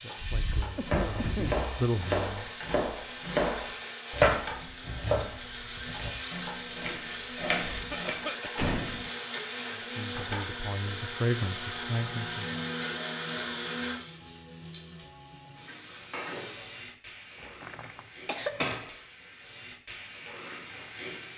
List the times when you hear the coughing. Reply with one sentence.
The coughing can be heard from 0.8 to 1.6 s, from 7.7 to 8.7 s and from 18.2 to 18.8 s.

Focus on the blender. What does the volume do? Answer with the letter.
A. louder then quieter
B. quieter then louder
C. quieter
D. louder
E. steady
D.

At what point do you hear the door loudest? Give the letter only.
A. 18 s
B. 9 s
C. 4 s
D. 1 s
B.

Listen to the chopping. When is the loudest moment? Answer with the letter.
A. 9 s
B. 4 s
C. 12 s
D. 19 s
B.